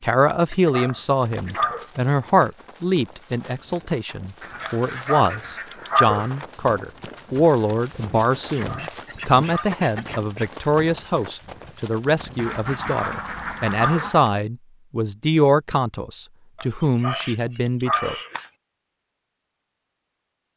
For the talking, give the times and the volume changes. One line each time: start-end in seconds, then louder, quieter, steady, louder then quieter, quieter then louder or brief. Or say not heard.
0.0-18.1 steady.